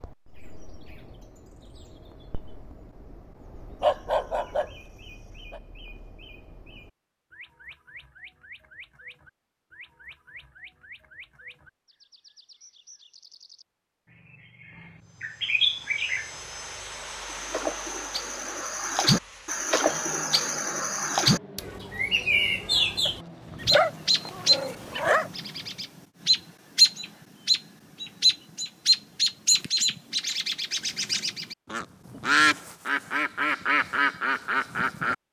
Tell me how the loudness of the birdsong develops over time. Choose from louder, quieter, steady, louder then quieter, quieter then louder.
louder.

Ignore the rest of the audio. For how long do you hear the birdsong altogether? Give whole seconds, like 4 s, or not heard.
35 s.